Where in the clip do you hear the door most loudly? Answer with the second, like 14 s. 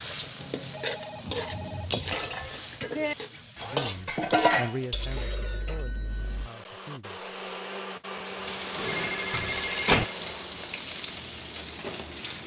10 s.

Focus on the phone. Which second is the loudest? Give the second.
9 s.